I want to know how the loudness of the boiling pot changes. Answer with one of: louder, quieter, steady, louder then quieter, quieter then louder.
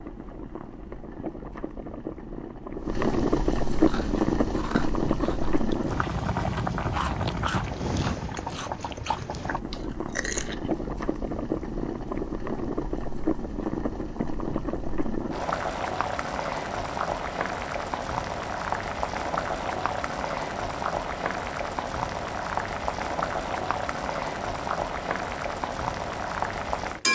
steady.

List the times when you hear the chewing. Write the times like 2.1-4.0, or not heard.
3.8-10.8.